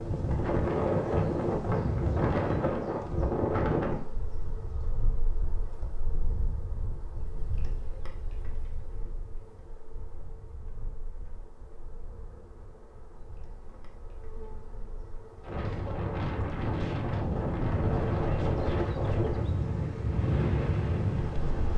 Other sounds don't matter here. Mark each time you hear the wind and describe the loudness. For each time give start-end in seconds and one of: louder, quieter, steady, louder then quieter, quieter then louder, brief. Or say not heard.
0.0-21.7 quieter then louder.